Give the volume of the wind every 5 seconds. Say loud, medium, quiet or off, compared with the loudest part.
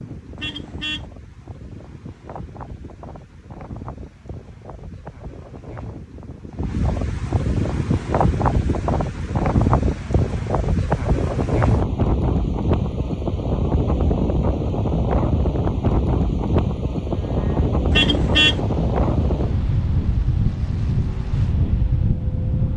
quiet, loud, loud, loud, loud.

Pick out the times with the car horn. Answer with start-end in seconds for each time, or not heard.
0.3-1.1, 17.9-18.6.